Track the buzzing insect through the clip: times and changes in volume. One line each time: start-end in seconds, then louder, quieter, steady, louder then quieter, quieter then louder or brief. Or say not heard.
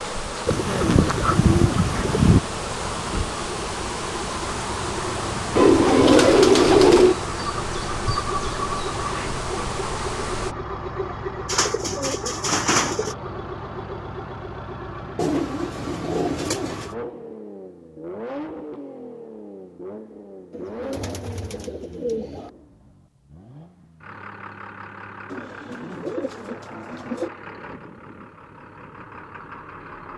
0.0-10.6 steady.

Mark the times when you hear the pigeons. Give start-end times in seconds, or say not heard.
0.5-2.4, 5.5-7.2, 11.4-13.2, 15.2-16.9, 20.5-22.5, 25.3-27.3.